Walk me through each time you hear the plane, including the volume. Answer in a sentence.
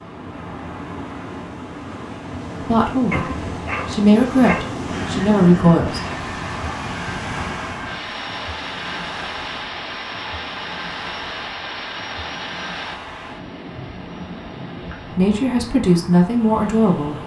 The plane can be heard from 4.8 to 15.2 s, getting quieter.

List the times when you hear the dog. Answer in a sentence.
The dog can be heard from 3.1 to 4.8 s.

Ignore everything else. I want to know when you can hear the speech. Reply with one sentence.
The speech can be heard from 2.6 to 6.0 s and from 15.1 to 17.1 s.